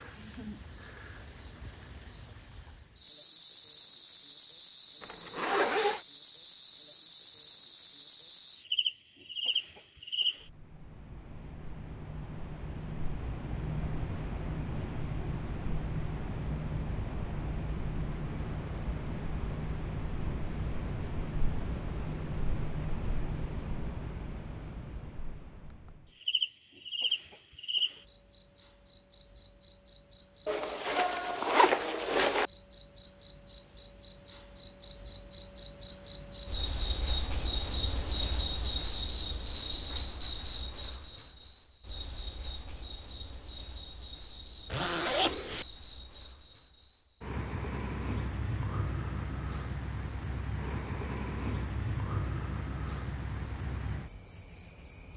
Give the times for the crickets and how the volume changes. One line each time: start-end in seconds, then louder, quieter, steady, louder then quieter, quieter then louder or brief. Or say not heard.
0.0-55.1 louder then quieter.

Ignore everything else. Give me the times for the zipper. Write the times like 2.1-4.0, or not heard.
5.0-6.0, 30.4-32.5, 44.7-45.6.